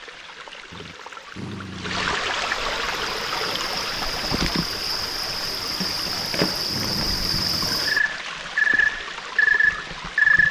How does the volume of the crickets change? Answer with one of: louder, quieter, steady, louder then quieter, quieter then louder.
louder.